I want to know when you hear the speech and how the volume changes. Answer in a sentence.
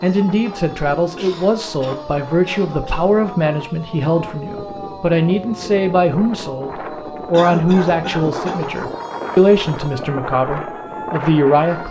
You can hear the speech from 0.0 to 11.8 s, at a steady volume.